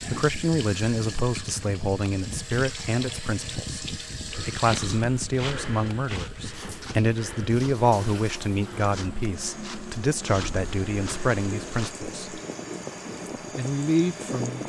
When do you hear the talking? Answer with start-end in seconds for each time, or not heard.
0.1-12.4, 13.5-14.6.